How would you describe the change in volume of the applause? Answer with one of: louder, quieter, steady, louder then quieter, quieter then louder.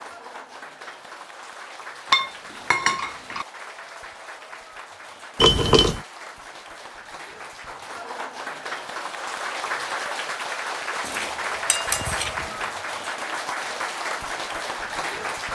louder.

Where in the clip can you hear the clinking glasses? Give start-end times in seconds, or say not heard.
2.1-3.5, 5.3-6.0, 11.1-12.4.